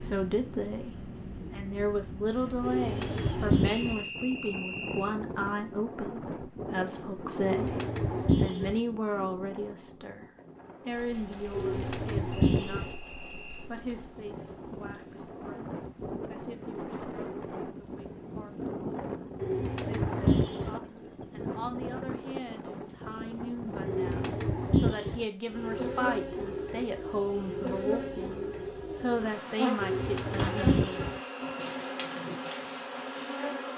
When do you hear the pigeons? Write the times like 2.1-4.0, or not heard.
2.6-4.0, 7.4-8.8, 11.5-12.9, 19.4-20.8, 23.9-25.2, 29.8-31.2.